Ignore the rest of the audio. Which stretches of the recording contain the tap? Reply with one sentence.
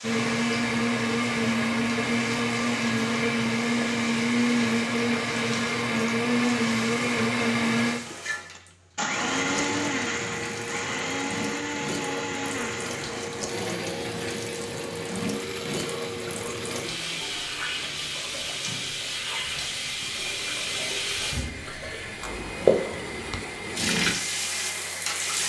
The tap can be heard from 0.0 to 25.4 s.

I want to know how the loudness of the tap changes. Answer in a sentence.
The volume of the tap goes up.